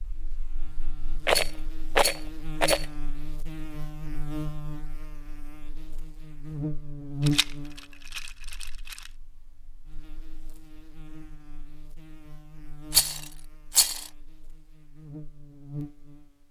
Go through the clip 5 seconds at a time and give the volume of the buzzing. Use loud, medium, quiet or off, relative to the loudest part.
medium, loud, quiet, medium.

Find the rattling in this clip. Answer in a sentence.
The rattling can be heard from 1.2 to 2.9 s, from 7.2 to 9.1 s and from 12.8 to 14.1 s.